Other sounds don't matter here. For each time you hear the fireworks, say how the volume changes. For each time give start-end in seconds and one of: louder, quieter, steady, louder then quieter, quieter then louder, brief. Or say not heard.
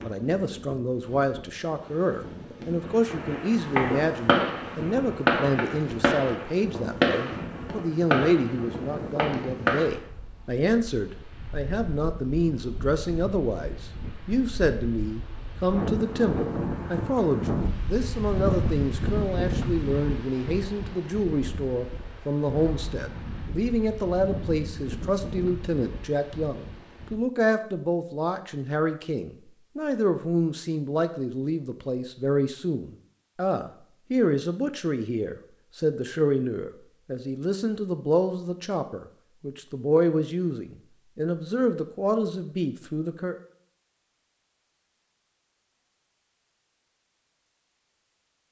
3.0-10.0 quieter.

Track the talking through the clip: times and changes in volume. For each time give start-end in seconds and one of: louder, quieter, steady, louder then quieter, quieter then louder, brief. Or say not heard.
0.0-43.4 steady.